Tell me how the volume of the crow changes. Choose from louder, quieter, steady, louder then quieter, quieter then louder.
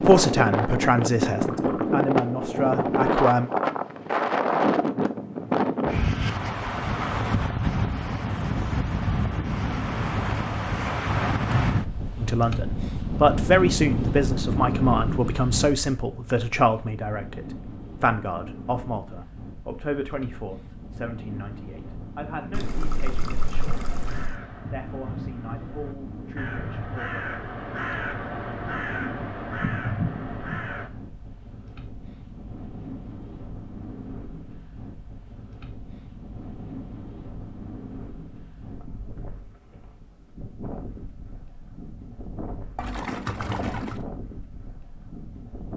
louder.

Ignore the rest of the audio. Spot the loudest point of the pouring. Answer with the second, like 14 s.
44 s.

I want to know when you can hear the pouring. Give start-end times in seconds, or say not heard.
1.4-1.9, 22.5-24.4, 42.8-44.0.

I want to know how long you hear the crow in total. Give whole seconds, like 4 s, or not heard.
7 s.